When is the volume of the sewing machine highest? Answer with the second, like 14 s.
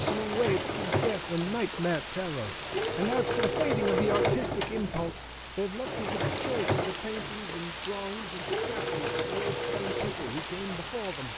4 s.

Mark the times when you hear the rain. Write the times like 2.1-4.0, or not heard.
0.0-11.3.